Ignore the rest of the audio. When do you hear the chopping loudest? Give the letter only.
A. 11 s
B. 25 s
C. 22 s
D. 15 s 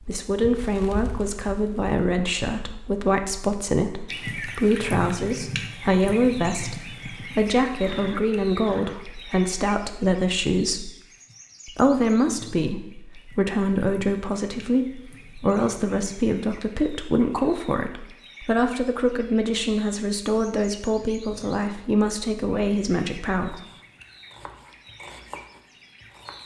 B.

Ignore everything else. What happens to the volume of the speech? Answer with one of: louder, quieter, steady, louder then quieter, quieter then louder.
steady.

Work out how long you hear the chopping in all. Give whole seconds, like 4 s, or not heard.
3 s.